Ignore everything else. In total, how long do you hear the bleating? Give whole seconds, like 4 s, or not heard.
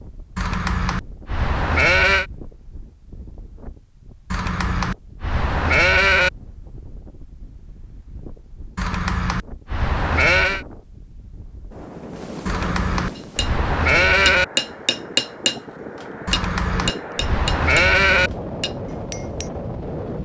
10 s.